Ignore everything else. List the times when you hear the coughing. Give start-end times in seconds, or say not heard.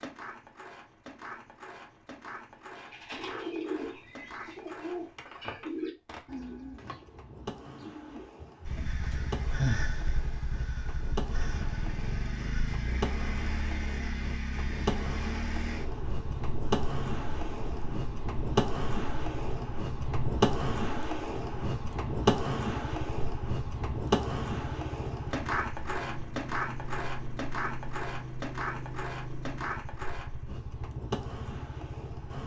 not heard.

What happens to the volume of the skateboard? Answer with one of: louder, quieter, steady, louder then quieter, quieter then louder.
louder then quieter.